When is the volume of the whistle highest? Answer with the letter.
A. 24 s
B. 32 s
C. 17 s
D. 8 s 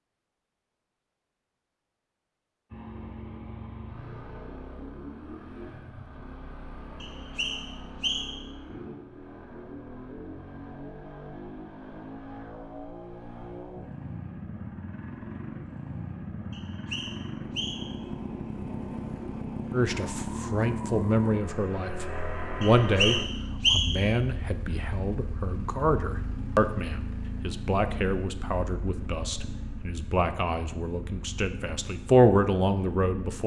A.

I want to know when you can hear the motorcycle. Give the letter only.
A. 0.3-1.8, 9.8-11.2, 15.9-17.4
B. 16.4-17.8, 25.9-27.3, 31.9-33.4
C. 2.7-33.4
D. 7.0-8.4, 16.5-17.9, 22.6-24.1
C.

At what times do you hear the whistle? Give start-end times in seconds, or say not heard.
7.0-8.4, 16.5-17.9, 22.6-24.1.